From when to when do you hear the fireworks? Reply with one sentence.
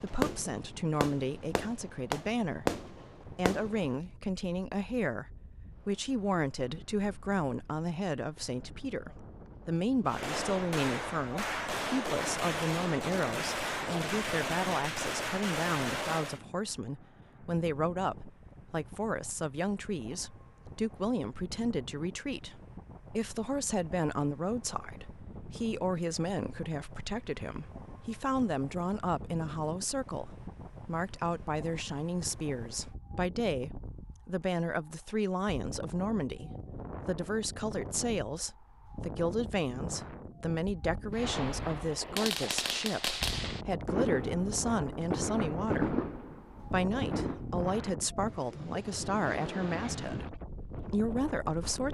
The fireworks can be heard from 0.0 to 4.0 s, from 10.1 to 16.4 s and from 41.1 to 47.5 s.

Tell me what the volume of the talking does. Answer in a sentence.
The loudness of the talking stays about the same.